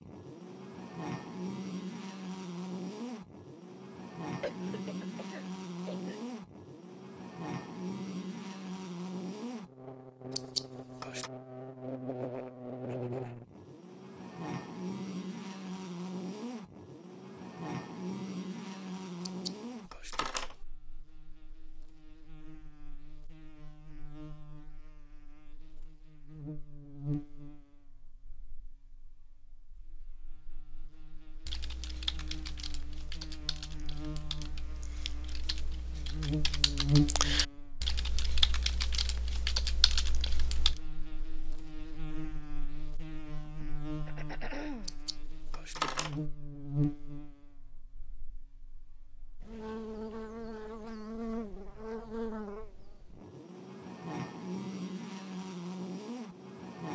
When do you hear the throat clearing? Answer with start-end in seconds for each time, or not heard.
4.4-6.2, 43.5-45.0.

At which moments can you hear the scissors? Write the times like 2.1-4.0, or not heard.
10.3-11.3, 19.2-20.6, 44.9-46.1.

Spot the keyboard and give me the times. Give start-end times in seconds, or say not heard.
31.4-40.8.